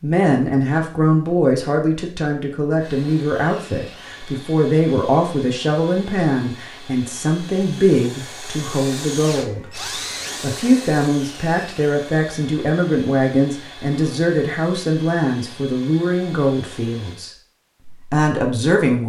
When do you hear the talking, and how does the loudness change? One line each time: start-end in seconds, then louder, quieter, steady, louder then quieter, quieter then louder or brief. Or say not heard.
0.0-19.0 steady.